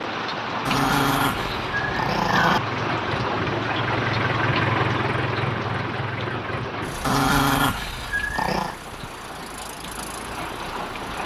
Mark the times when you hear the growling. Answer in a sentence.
You can hear the growling from 0.7 to 2.6 s and from 7.0 to 8.8 s.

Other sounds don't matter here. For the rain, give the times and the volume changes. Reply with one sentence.
The rain can be heard from 0.0 to 11.2 s, getting quieter.